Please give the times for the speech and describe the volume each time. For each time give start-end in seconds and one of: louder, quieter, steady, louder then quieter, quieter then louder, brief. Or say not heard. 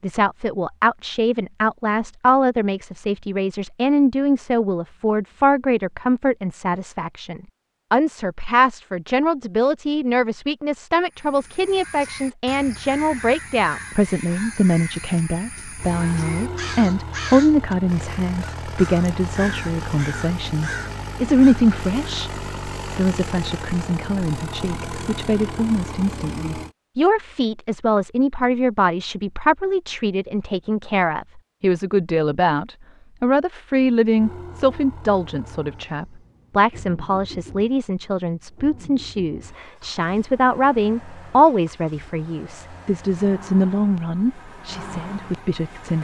0.0-45.9 steady.